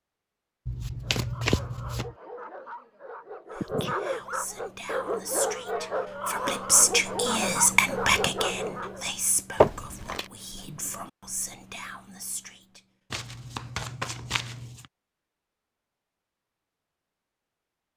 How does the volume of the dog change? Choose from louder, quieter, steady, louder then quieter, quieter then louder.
louder.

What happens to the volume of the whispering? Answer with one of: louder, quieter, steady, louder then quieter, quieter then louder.
louder then quieter.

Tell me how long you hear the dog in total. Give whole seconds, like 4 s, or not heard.
8 s.